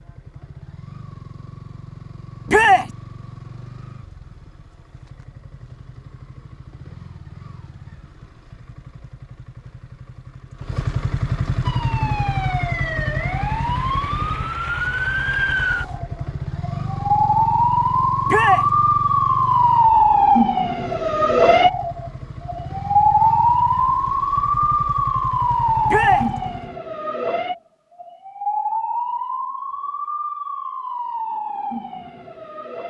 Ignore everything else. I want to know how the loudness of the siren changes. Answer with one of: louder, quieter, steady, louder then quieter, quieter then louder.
louder then quieter.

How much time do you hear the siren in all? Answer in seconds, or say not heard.
21 s.